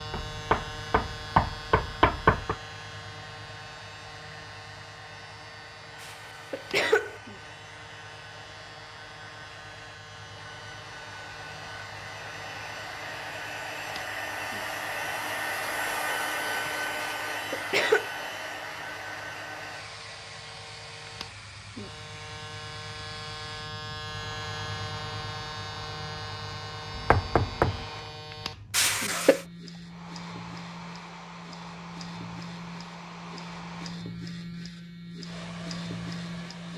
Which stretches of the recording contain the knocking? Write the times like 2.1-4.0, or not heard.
0.1-2.5, 26.9-27.9.